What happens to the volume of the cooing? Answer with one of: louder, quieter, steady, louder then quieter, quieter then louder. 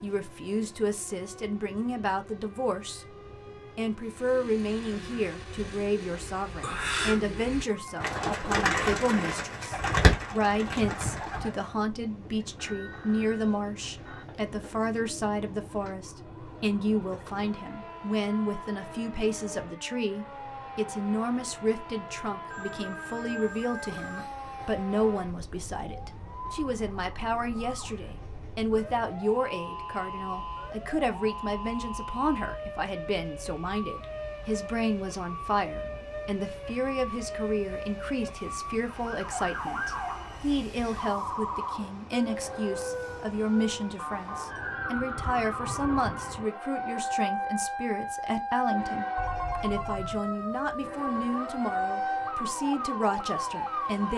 louder.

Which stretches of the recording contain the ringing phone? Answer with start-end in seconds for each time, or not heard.
12.6-14.4, 22.4-24.2, 49.1-50.2.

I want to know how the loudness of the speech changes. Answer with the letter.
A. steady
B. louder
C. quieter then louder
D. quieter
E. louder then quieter
A.